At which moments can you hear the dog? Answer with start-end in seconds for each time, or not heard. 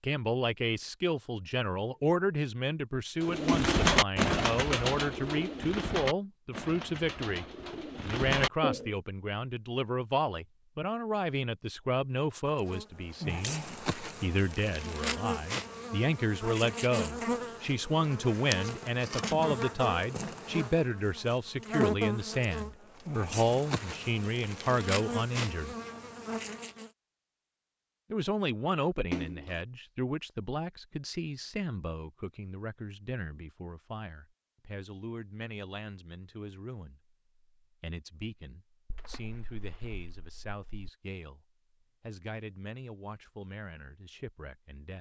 not heard.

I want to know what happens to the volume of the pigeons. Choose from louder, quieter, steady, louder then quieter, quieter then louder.
quieter then louder.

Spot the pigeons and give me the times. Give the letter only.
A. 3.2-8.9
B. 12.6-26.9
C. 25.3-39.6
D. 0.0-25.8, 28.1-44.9
A.